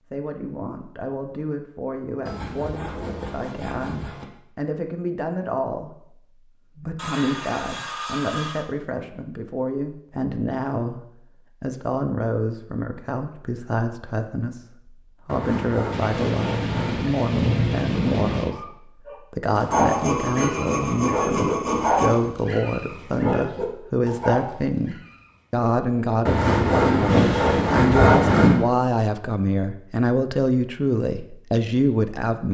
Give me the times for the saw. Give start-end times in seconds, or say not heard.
2.2-4.2, 7.0-8.7, 15.2-17.1, 19.7-22.2, 26.2-28.6.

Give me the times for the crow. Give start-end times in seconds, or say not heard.
not heard.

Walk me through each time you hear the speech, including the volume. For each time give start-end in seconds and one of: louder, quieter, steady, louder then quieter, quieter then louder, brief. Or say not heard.
0.1-32.4 louder.